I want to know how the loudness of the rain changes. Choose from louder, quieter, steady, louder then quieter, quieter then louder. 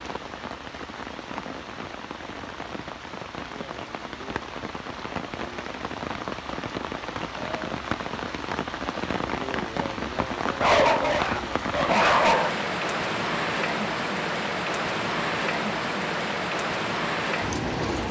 louder.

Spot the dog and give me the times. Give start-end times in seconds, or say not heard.
10.4-12.6.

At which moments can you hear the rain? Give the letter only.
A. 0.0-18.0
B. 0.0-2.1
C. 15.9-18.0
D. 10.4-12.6
A.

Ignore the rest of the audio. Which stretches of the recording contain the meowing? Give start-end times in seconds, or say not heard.
not heard.